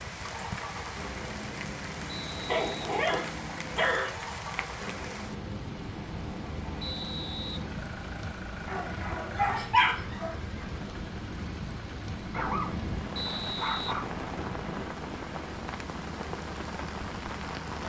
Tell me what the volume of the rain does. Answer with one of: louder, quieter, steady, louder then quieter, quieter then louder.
steady.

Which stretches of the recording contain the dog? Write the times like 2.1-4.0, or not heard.
2.4-4.1, 8.7-10.3, 12.3-14.9.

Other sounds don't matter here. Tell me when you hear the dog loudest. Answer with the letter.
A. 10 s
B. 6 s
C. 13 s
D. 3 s
A.